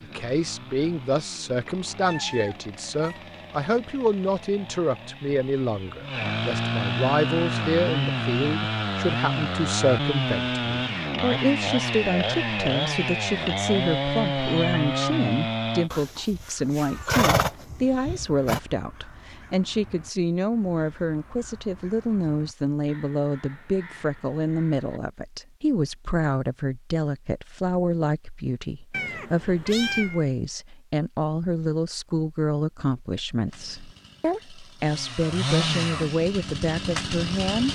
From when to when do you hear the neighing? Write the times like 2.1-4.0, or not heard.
15.9-18.6.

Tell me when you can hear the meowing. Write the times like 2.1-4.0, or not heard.
2.0-3.2, 14.3-15.1, 28.9-30.2.